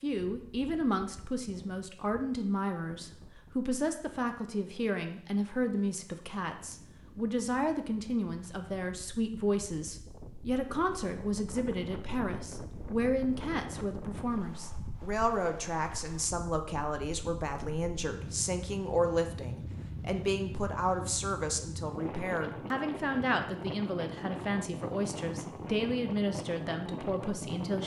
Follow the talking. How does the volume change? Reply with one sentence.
The loudness of the talking stays about the same.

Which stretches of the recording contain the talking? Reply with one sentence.
The talking can be heard from 0.0 to 27.8 s.